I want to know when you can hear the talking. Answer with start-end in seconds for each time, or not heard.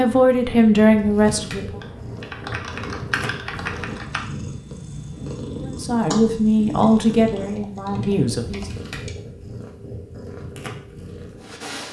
0.0-1.8, 5.6-8.8.